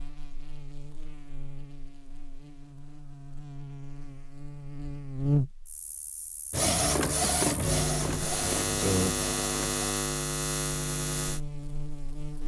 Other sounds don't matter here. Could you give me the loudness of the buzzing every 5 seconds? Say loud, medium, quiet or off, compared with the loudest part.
quiet, loud, loud.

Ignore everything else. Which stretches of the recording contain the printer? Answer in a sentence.
The printer can be heard from 6.5 to 9.8 s.